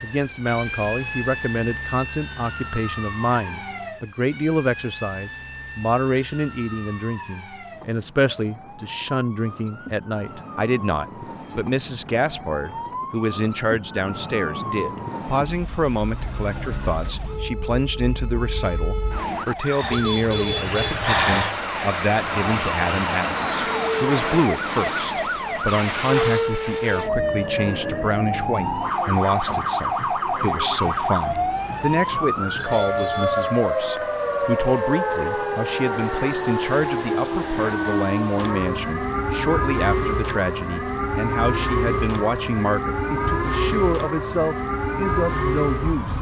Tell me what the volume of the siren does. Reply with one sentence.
The loudness of the siren goes up.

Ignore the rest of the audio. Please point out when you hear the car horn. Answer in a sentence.
You can hear the car horn from 19.8 to 21.2 s and from 32.5 to 33.5 s.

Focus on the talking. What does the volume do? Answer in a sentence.
The loudness of the talking stays about the same.